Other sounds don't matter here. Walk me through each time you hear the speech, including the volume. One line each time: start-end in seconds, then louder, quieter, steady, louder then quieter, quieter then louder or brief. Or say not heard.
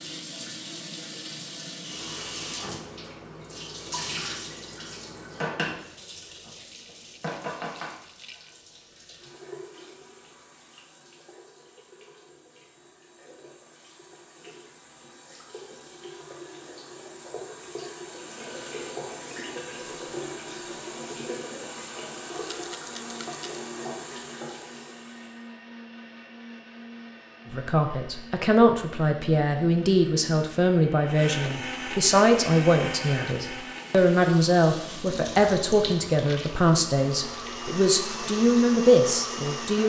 27.5-39.8 steady.